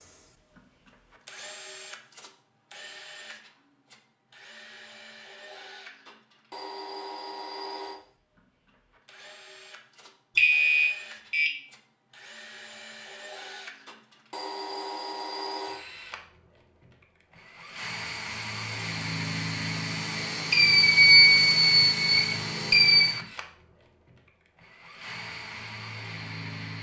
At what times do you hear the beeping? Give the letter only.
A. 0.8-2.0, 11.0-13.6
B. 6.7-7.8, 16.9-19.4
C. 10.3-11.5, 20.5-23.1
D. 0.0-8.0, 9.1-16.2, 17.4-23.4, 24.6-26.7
C.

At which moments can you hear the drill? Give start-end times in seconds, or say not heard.
0.0-8.0, 9.1-16.2, 17.4-23.4, 24.6-26.7.